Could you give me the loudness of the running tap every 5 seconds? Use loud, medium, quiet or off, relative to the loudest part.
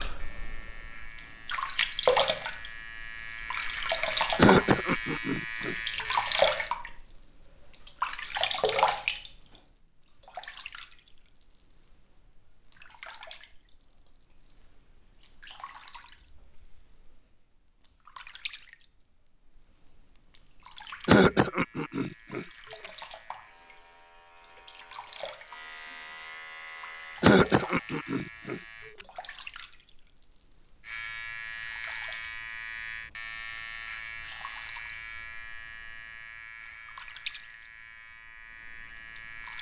loud, loud, quiet, quiet, quiet, quiet, quiet, quiet.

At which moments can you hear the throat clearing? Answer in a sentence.
You can hear the throat clearing from 4.3 to 6.2 s, from 21.1 to 22.9 s and from 27.2 to 29.1 s.